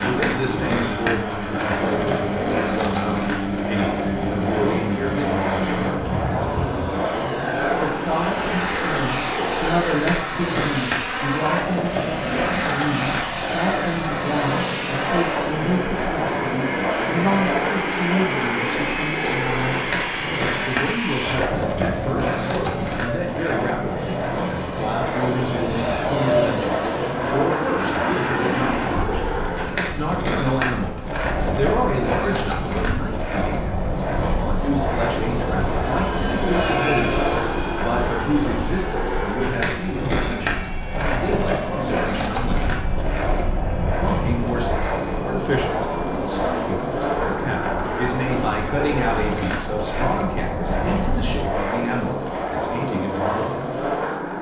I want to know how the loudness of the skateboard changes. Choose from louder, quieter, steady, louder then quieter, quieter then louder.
steady.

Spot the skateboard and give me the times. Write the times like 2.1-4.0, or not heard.
0.0-54.3.